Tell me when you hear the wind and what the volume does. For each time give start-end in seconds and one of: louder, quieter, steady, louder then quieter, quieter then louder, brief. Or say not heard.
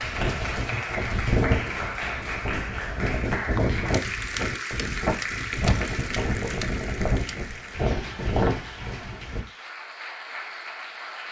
0.0-9.4 steady.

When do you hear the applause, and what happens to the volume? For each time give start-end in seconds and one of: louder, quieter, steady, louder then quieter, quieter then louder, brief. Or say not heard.
0.0-11.2 quieter.